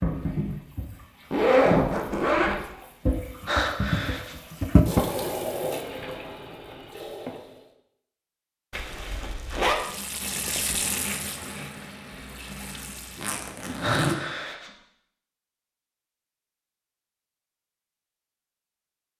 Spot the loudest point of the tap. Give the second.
5 s.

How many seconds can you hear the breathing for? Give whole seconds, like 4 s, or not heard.
2 s.